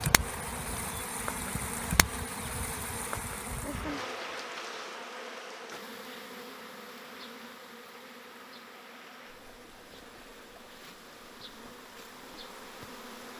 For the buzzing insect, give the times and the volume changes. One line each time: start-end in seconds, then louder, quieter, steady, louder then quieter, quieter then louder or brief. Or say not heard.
0.0-13.3 quieter.